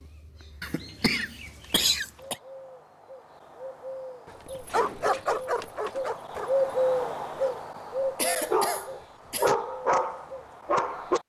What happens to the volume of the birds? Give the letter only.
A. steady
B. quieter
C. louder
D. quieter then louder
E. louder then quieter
E.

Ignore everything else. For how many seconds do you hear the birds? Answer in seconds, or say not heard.
11 s.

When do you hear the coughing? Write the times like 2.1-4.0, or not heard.
0.6-2.4, 7.8-9.5.